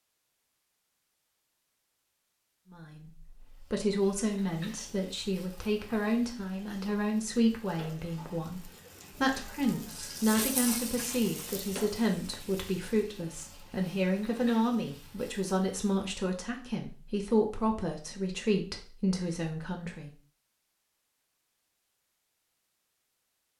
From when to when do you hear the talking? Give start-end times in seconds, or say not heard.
2.7-20.1.